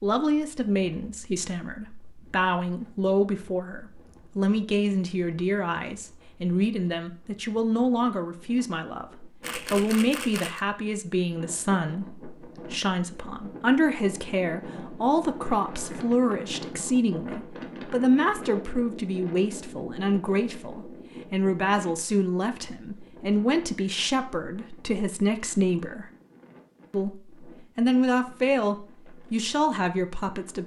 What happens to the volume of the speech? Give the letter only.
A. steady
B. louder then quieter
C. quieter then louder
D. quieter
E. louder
A.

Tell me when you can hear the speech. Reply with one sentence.
You can hear the speech from 0.0 to 26.1 s and from 26.9 to 30.6 s.